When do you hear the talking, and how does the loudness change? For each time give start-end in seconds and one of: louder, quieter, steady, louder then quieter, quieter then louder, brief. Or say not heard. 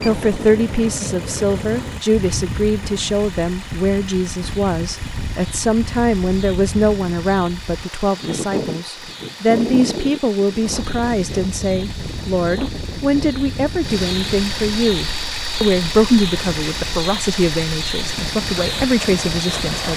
0.0-19.9 steady.